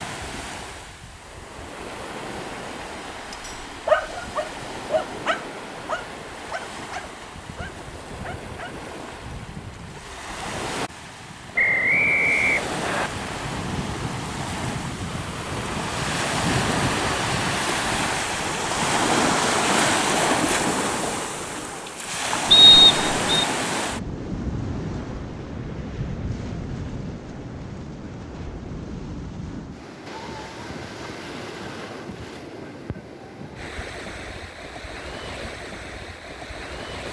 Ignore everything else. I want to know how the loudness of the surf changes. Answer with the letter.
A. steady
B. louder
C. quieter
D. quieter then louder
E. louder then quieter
E.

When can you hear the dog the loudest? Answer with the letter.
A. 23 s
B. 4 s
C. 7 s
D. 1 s
B.